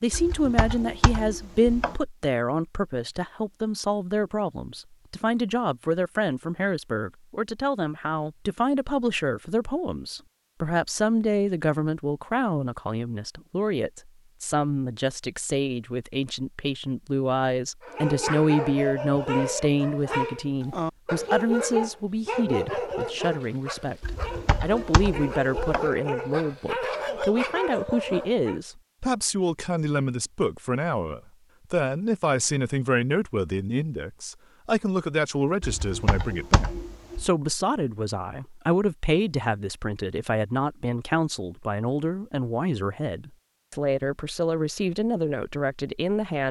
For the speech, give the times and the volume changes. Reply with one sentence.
The speech can be heard from 0.0 to 46.4 s, at a steady volume.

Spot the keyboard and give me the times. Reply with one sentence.
You can hear the keyboard from 0.1 to 1.9 s, from 24.0 to 25.9 s and from 35.6 to 37.2 s.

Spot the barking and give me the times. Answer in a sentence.
You can hear the barking from 17.8 to 28.6 s.